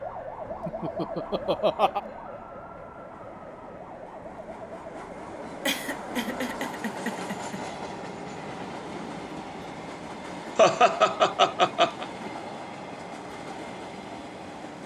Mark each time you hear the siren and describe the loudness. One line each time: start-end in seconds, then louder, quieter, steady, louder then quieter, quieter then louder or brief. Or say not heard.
0.0-6.5 quieter.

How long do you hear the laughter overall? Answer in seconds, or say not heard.
5 s.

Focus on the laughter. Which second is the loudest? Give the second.
11 s.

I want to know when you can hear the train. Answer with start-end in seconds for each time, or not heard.
0.0-14.8.